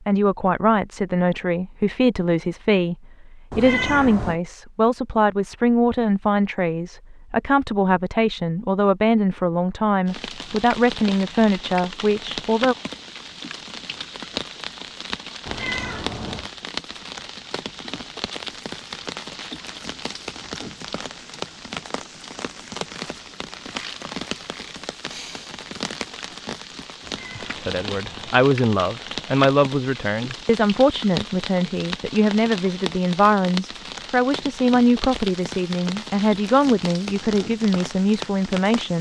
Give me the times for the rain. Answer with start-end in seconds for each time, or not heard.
10.1-38.9.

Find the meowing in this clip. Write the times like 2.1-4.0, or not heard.
3.5-4.4, 15.4-16.5, 27.0-28.4.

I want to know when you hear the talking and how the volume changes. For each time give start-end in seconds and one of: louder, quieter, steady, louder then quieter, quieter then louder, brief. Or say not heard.
0.1-12.8 steady
27.4-38.9 steady.